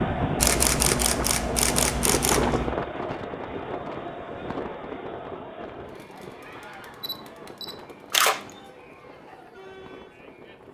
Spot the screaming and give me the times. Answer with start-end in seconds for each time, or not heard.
6.4-7.0.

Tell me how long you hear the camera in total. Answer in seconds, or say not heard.
4 s.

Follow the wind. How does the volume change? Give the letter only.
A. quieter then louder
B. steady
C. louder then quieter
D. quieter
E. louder
D.